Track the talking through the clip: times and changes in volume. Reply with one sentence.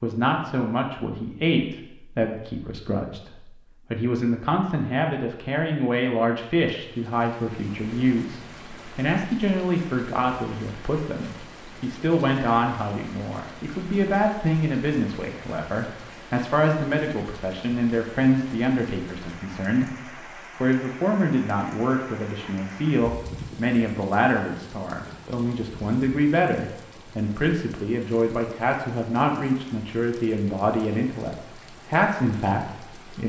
You can hear the talking from 0.0 to 33.2 s, at a steady volume.